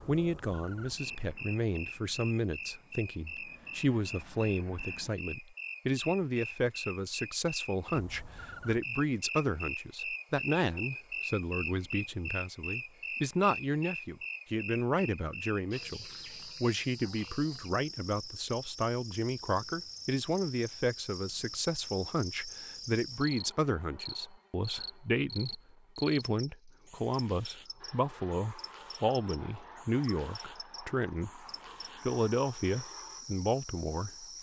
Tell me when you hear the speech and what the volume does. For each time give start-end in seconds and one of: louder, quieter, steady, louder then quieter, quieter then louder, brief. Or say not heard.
0.1-31.4 steady
32.0-34.3 brief.